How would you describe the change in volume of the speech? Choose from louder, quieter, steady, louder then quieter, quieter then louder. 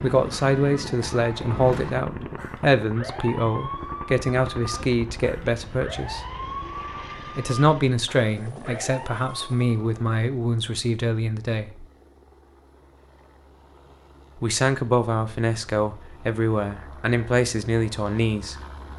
steady.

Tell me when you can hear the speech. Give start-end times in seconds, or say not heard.
0.0-6.2, 7.3-11.8, 14.4-18.6.